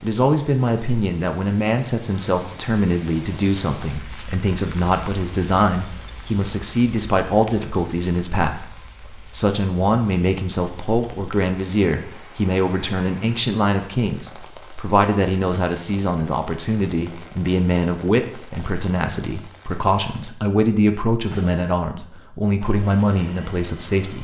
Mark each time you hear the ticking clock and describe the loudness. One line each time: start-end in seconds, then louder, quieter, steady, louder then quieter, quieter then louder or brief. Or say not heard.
not heard.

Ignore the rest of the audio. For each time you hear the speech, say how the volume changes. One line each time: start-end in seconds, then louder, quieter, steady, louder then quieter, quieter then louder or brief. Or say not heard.
0.0-24.1 steady.